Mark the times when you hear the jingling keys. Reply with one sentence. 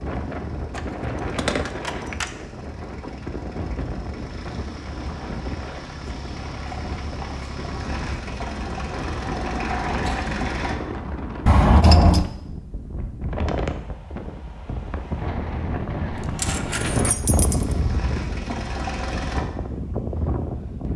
The jingling keys can be heard from 0.8 to 2.3 s, from 11.4 to 12.2 s and from 16.1 to 17.8 s.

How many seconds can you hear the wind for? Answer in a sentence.
You can hear the wind for 21 seconds altogether.